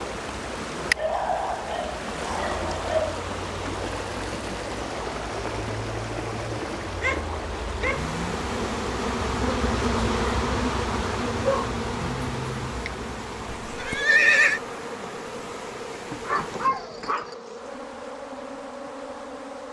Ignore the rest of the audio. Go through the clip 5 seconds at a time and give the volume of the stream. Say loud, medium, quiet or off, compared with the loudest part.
loud, loud, medium, medium.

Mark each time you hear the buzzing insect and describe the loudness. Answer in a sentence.
You can hear the buzzing insect from 0.1 to 19.6 s, getting louder then quieter.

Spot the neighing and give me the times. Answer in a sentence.
The neighing can be heard from 13.6 to 14.6 s.